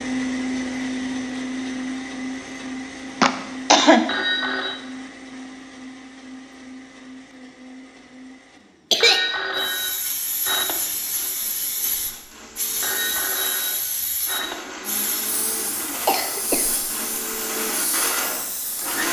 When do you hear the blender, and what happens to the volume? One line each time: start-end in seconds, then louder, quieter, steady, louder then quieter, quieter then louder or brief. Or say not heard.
0.0-19.0 quieter then louder.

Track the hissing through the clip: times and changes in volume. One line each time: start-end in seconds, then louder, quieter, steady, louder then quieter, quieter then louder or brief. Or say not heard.
9.6-19.0 steady.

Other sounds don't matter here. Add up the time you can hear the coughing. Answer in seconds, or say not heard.
2 s.